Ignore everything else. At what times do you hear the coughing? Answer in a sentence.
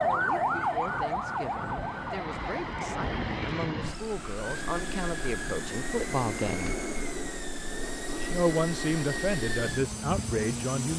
The coughing can't be heard in this clip.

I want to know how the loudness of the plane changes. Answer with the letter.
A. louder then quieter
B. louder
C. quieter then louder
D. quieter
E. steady
B.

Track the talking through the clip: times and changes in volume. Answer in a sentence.
You can hear the talking from 0.0 to 6.8 s, getting louder; and briefly from 8.3 to 10.9 s.